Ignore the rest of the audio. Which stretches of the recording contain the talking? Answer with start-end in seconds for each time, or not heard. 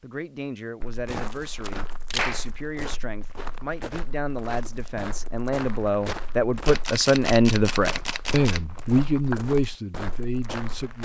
0.0-11.0.